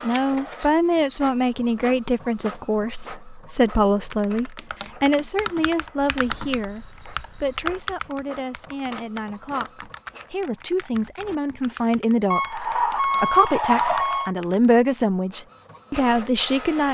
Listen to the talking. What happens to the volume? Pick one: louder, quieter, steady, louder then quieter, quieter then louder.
quieter then louder.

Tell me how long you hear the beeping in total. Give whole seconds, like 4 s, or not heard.
5 s.